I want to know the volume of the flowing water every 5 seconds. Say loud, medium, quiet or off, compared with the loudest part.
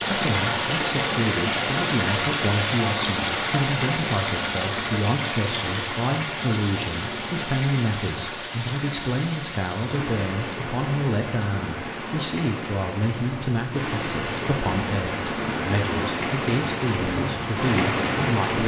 loud, medium, medium, loud.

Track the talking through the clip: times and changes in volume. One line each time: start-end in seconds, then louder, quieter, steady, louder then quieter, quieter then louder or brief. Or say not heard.
0.1-18.6 steady.